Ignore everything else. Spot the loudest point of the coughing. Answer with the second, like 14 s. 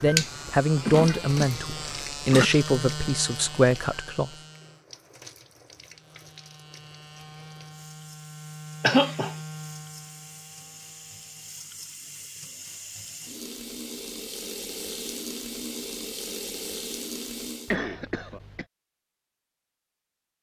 9 s.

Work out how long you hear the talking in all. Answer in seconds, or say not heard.
4 s.